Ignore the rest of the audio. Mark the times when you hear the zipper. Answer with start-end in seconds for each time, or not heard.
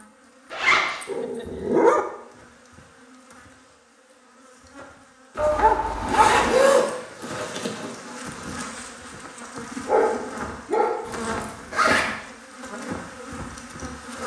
0.5-1.0, 5.3-8.0, 11.1-12.1.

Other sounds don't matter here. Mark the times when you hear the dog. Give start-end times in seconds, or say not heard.
1.1-2.0, 5.3-6.5, 9.8-11.1.